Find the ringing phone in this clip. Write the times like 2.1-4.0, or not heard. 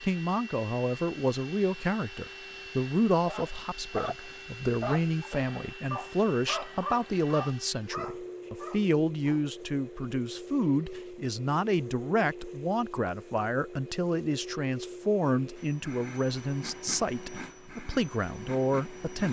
not heard.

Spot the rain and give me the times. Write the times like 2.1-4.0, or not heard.
not heard.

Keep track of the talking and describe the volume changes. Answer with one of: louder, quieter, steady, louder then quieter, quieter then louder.
steady.